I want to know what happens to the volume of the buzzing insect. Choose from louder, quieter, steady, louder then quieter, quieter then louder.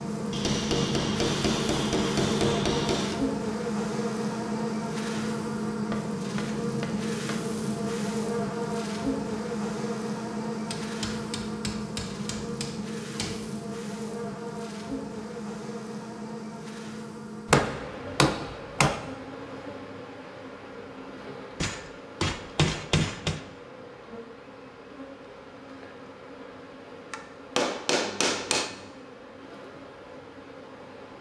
quieter.